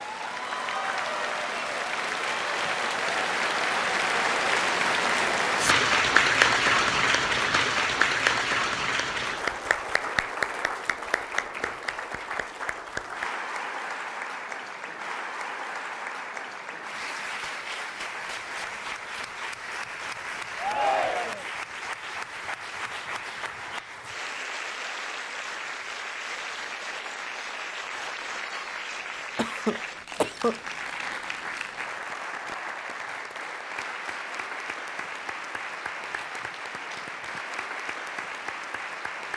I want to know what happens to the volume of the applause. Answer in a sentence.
The volume of the applause goes down.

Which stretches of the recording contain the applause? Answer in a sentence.
The applause can be heard from 0.0 to 39.3 s.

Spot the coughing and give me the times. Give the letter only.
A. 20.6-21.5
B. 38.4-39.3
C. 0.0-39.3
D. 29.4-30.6
D.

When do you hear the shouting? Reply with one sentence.
The shouting can be heard from 20.6 to 21.5 s.